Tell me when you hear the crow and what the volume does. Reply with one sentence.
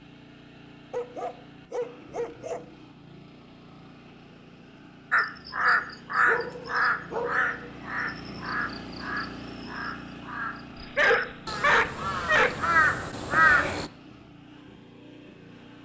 The crow can be heard from 5.1 to 13.9 s, getting quieter then louder.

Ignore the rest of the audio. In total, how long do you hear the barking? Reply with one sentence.
The barking can be heard for 5 seconds in total.